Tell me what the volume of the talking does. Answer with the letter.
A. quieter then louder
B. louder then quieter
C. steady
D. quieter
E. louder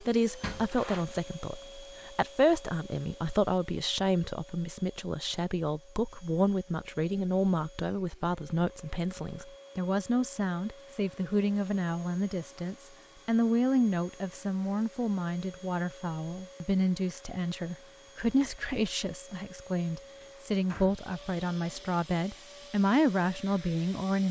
C.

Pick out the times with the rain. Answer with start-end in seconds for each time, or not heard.
not heard.